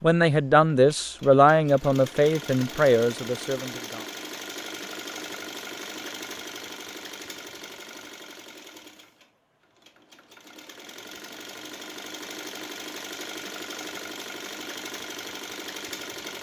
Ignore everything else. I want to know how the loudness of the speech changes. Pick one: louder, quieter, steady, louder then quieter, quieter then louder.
quieter.